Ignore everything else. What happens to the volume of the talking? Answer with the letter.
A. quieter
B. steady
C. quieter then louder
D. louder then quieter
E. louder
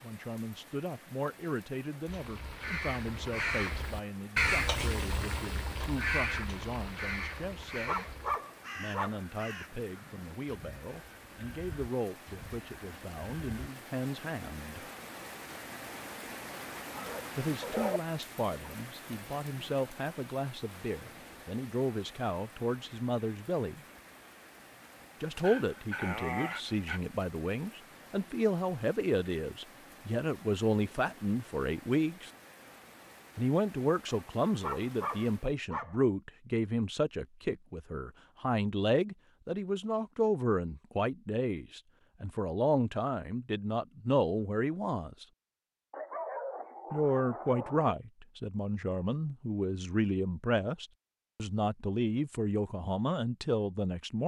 E.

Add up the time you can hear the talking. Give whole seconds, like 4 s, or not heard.
47 s.